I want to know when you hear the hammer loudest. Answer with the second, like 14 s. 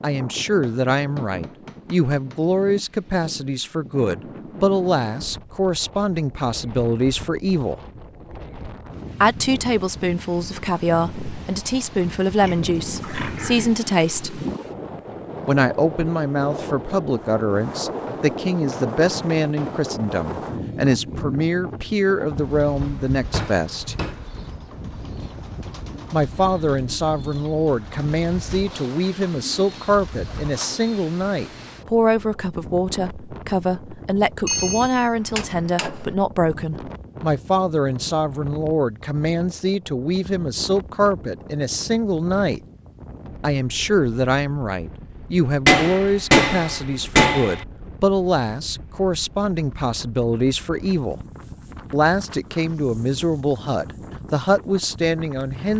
46 s.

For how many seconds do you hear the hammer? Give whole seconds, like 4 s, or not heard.
9 s.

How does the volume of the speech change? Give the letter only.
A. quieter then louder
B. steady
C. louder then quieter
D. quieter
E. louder
B.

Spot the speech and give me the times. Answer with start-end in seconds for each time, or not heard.
0.0-7.8, 9.2-14.4, 15.4-23.9, 26.1-42.6, 43.4-51.1, 51.9-55.7.